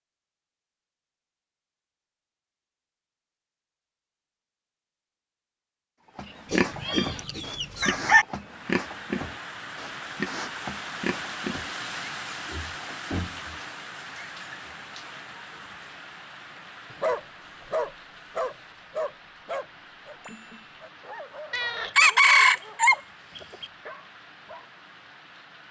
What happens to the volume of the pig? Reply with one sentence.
The volume of the pig goes down.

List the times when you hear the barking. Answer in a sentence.
The barking can be heard from 16.9 to 24.8 s.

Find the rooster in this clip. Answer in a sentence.
You can hear the rooster from 6.5 to 8.2 s and from 21.9 to 23.6 s.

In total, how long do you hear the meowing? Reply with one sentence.
You can hear the meowing for 2 seconds altogether.